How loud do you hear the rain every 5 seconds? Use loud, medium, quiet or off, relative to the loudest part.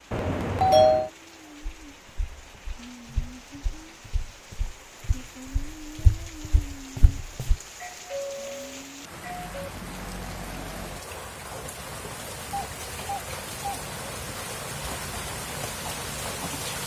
quiet, medium, loud, loud.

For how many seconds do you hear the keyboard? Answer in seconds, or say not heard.
not heard.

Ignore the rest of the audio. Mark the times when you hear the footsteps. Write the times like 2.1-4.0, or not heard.
1.6-7.5.